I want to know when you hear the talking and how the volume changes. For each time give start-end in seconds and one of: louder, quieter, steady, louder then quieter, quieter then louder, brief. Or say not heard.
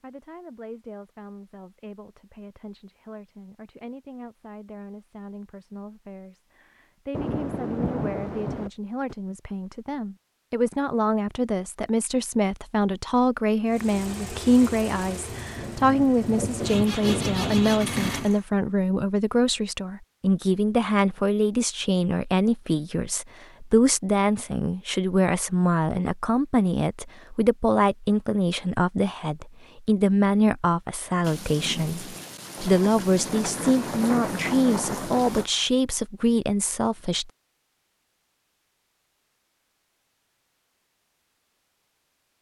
0.0-37.3 louder.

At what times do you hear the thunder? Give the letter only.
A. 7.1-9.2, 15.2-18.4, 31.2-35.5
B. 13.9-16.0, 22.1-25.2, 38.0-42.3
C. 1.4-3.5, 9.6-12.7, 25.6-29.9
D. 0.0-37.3
A.